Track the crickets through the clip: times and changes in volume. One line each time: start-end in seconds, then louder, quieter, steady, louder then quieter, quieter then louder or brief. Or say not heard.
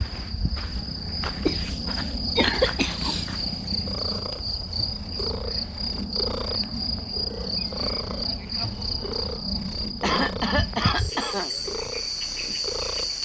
0.0-13.1 steady.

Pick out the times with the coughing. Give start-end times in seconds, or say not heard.
1.4-3.1, 10.0-11.5.